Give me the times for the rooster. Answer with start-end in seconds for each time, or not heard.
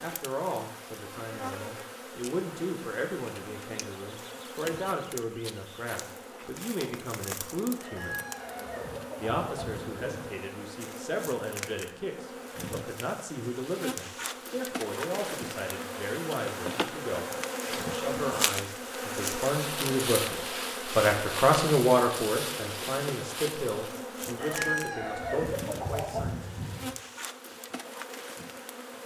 7.8-10.3, 24.4-26.9.